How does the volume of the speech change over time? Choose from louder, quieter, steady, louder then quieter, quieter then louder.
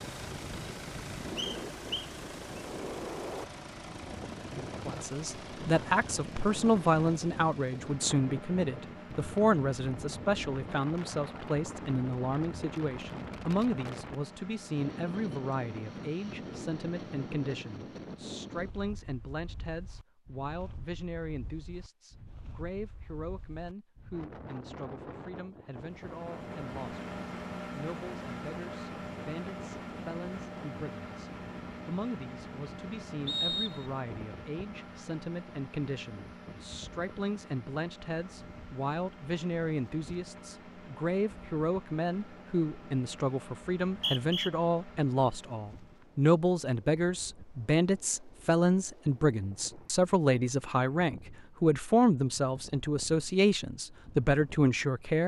quieter then louder.